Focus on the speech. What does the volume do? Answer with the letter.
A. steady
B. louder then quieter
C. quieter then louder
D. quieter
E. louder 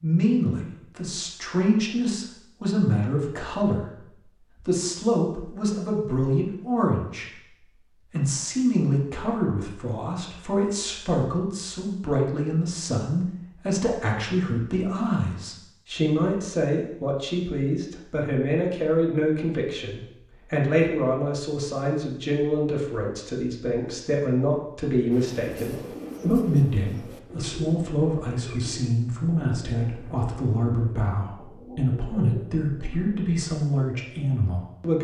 A.